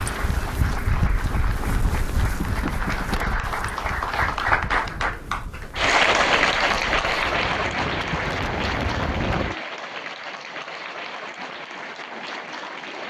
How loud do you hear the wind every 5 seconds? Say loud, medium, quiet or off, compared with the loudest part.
loud, loud, off.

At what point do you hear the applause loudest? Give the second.
6 s.